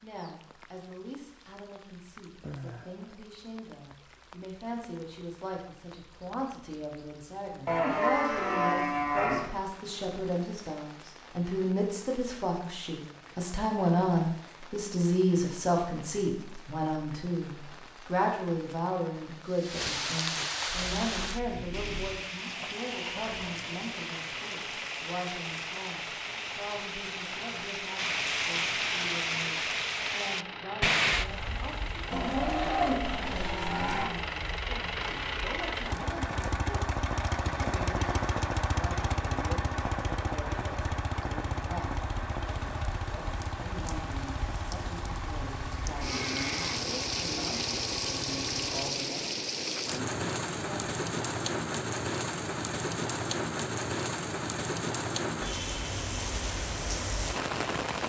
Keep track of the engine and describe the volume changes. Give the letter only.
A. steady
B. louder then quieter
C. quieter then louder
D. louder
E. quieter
B.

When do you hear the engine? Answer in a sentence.
You can hear the engine from 20.6 to 49.0 s.